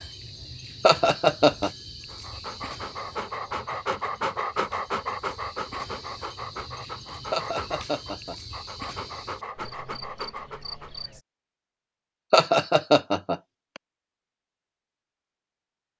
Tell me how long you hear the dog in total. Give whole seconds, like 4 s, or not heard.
9 s.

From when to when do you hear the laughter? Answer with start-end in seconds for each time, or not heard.
0.8-1.7, 7.3-8.3, 12.3-13.8.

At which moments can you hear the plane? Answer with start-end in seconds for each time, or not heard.
not heard.